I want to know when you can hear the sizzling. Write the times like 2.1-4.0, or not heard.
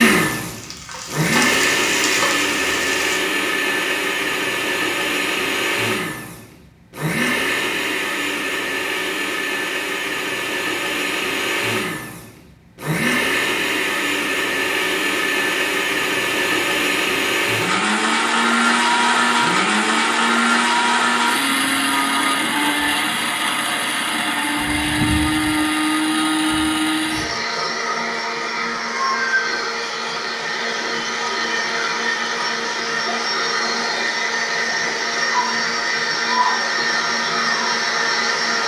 0.1-3.2.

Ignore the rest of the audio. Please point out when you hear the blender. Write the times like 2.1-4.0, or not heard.
0.0-38.6.